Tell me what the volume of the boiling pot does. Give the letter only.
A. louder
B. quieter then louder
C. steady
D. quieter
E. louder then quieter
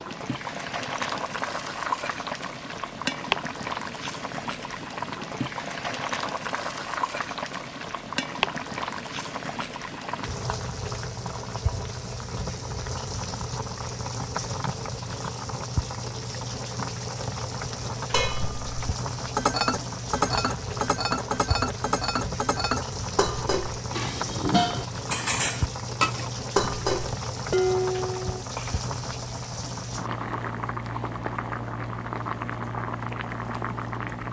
C.